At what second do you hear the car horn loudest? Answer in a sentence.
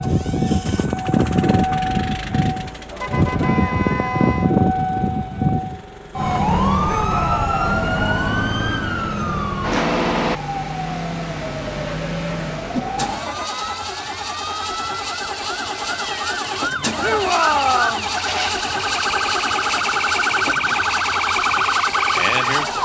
The loudest moment of the car horn is at 4 seconds.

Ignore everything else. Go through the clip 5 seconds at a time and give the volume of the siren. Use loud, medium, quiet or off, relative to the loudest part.
loud, loud, medium, medium, loud.